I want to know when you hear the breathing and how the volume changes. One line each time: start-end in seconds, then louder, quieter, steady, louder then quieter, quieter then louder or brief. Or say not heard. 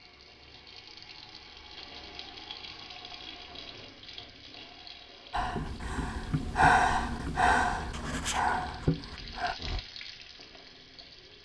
5.3-9.8 louder then quieter.